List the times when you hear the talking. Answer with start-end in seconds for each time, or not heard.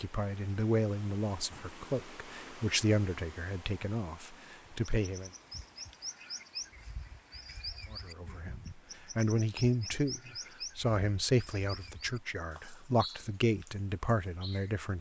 0.0-5.3, 7.9-14.9.